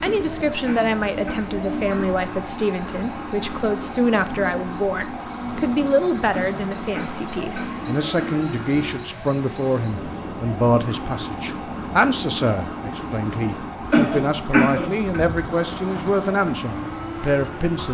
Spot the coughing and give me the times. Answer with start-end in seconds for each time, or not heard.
0.1-2.0, 6.3-8.3, 13.9-15.2.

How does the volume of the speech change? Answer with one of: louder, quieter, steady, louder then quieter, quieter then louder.
steady.